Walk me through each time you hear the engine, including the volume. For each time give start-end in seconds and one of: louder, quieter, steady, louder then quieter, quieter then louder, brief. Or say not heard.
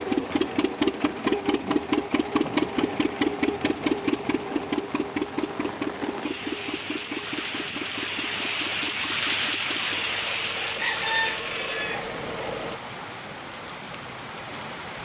0.0-12.8 quieter.